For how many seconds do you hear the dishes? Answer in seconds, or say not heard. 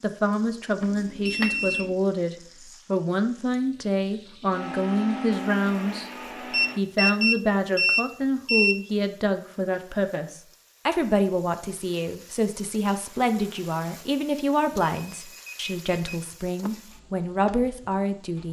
not heard.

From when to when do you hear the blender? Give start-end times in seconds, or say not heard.
4.5-6.8.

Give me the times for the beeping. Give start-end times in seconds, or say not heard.
0.8-1.9, 6.5-8.8, 14.7-16.7.